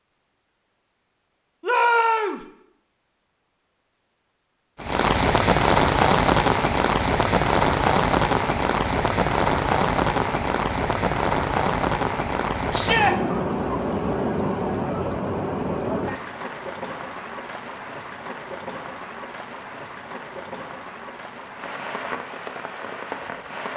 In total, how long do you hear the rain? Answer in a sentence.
You can hear the rain for 19 seconds altogether.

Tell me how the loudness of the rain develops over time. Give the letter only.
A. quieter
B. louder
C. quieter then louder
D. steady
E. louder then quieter
A.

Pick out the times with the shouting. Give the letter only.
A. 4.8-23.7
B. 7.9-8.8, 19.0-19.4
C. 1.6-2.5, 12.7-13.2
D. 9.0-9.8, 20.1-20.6
C.